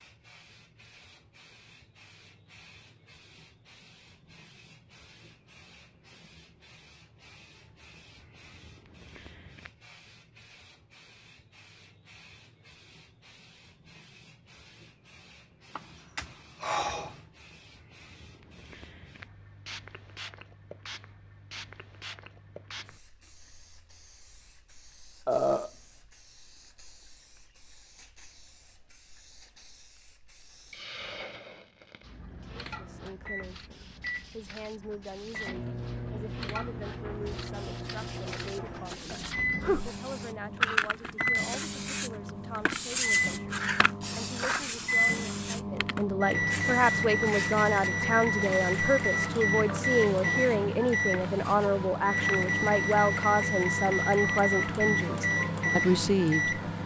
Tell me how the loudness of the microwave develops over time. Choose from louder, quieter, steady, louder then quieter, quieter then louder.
louder.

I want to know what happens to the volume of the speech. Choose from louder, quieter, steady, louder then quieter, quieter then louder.
louder.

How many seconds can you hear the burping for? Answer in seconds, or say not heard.
3 s.